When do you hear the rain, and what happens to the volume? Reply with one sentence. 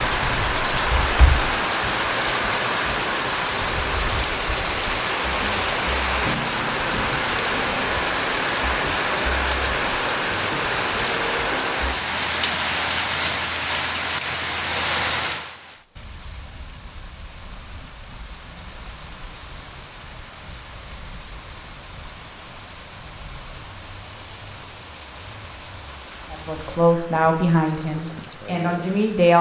You can hear the rain from 0.0 to 29.3 s, getting quieter.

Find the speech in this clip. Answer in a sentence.
You can hear the speech from 26.3 to 29.3 s.